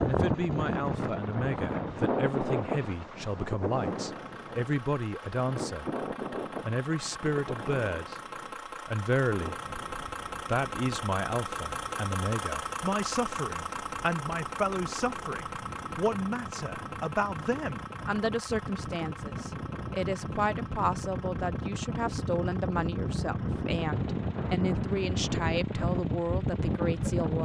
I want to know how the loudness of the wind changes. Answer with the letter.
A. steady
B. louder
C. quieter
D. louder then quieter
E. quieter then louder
E.